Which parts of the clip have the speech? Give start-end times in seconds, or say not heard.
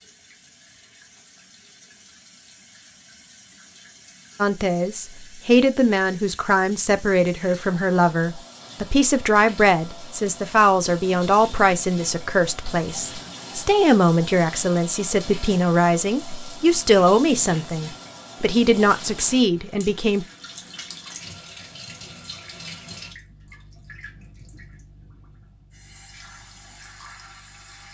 4.4-20.2.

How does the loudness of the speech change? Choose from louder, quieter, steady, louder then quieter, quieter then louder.
steady.